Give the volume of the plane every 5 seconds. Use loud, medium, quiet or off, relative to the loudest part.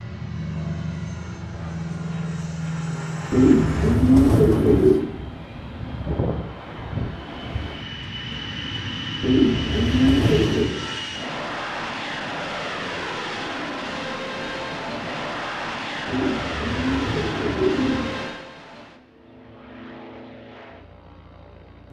loud, loud, loud, loud, quiet.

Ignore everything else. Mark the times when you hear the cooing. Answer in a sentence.
The cooing can be heard from 3.3 to 5.0 s, from 9.2 to 10.8 s and from 16.1 to 18.2 s.